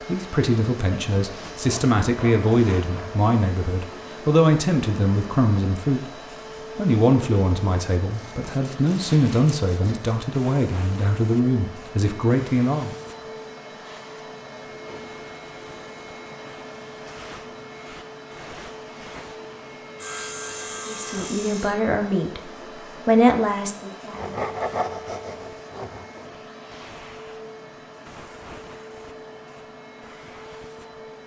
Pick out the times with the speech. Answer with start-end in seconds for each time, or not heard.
0.1-6.2, 6.8-12.9, 20.9-24.4.